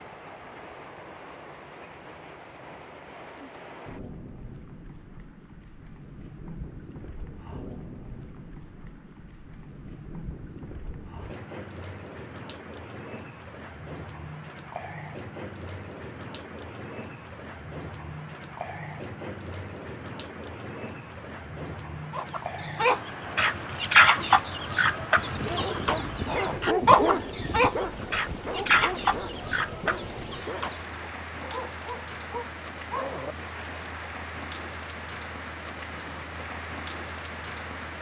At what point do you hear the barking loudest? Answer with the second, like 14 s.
27 s.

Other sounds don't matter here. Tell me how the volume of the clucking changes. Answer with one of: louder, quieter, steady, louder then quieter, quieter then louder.
quieter.